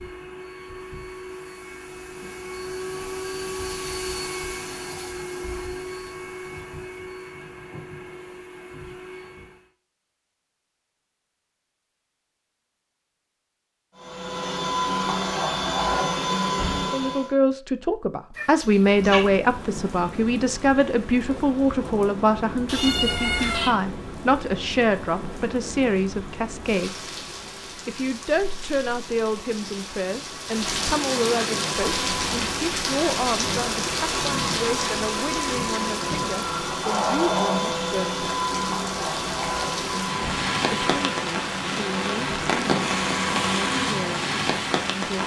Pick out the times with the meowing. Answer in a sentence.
You can hear the meowing from 18.4 to 19.2 s and from 22.6 to 23.8 s.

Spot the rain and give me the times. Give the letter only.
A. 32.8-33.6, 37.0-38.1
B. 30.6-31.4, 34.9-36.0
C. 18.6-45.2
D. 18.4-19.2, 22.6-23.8
C.